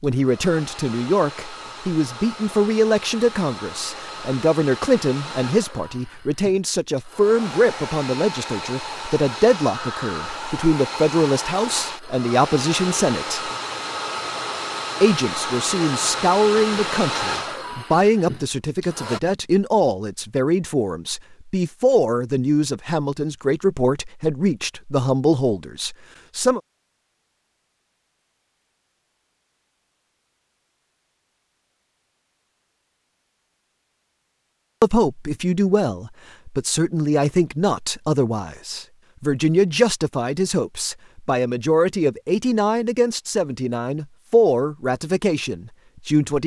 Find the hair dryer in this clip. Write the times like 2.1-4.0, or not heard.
0.0-19.2.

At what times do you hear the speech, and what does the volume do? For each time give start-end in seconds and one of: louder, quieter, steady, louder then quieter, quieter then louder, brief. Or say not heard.
0.0-13.5 steady
15.0-26.6 steady
34.8-46.4 steady.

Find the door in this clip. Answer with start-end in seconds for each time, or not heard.
not heard.